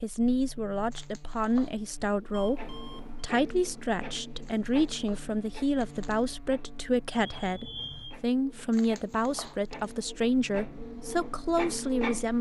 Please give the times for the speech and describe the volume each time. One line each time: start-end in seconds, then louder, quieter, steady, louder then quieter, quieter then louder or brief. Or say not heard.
0.0-12.3 steady.